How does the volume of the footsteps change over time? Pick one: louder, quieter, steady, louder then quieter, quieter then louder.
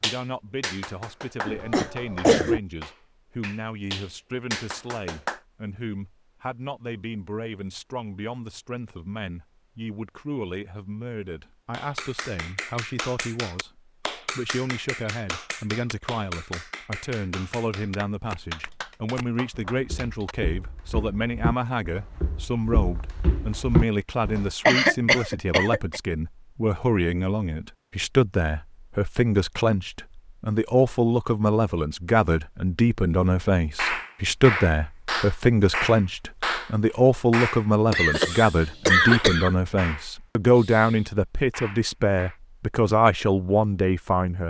louder.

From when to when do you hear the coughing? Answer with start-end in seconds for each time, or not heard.
1.4-2.6, 24.6-26.0, 37.9-39.5.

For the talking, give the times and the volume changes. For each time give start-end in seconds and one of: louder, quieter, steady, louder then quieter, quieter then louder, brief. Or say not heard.
0.0-44.4 louder.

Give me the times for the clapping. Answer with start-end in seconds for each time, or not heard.
0.0-5.4, 11.7-20.4, 33.8-42.4.